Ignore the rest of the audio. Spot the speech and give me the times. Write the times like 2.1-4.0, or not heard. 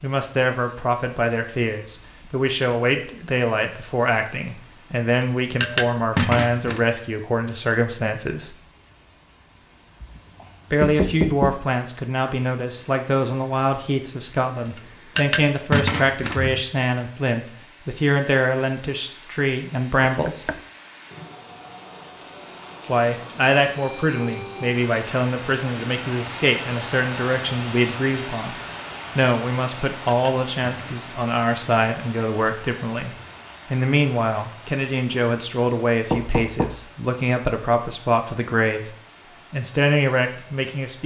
0.0-8.6, 10.7-20.4, 22.9-28.6, 29.1-41.0.